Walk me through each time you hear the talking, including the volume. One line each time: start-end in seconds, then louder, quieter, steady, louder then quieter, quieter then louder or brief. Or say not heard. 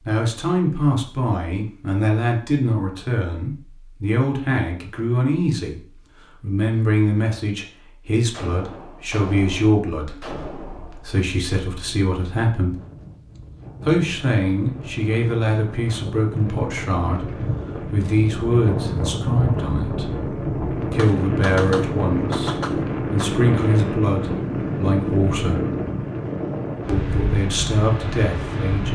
0.0-12.8 quieter
13.8-25.6 steady
26.9-28.9 brief.